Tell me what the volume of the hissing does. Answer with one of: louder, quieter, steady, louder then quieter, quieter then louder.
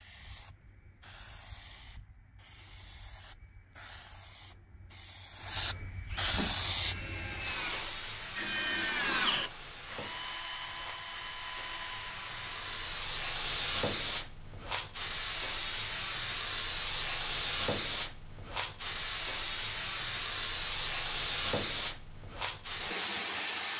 louder.